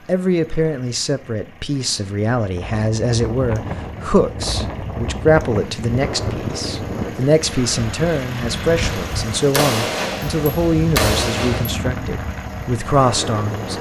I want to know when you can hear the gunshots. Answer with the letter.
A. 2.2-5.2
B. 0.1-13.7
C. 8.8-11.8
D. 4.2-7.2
C.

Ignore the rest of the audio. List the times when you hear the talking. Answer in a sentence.
You can hear the talking from 0.1 to 13.7 s.